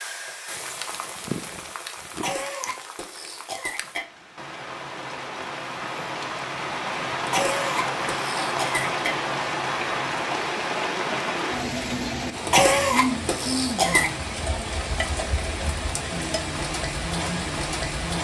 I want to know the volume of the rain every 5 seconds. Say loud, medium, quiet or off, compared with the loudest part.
medium, loud, loud, loud.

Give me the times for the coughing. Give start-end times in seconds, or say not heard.
2.1-4.0, 7.2-9.2, 12.4-14.1.